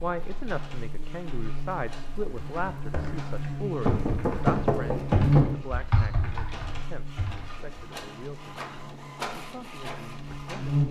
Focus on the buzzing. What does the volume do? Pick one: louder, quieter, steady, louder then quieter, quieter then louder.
louder then quieter.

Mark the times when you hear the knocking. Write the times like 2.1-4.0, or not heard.
3.9-5.5.